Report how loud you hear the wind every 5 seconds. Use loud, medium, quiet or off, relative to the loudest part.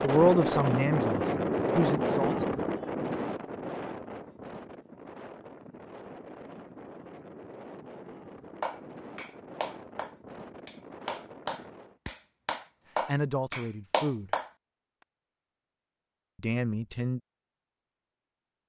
loud, quiet, quiet, off.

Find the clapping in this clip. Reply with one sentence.
The clapping can be heard from 8.6 to 14.5 s.